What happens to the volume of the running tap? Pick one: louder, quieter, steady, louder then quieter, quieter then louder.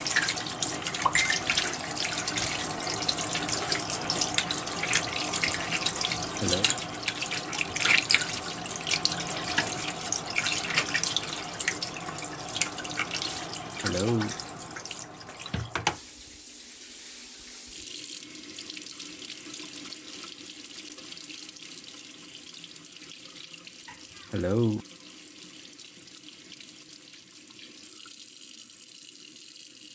quieter.